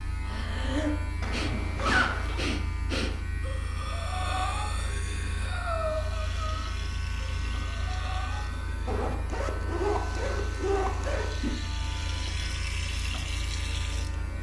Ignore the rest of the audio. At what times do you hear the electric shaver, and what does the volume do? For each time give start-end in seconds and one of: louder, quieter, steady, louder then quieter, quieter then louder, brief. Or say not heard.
0.0-14.3 steady.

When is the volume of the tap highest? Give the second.
13 s.